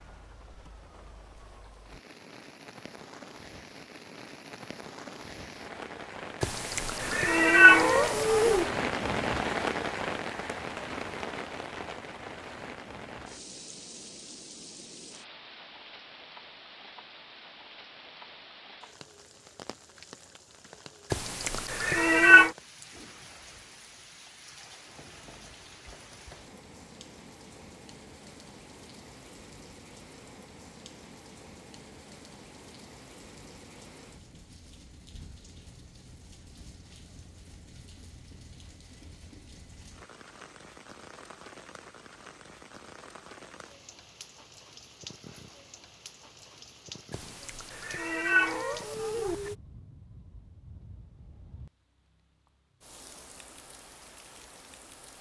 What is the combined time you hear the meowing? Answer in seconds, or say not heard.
6 s.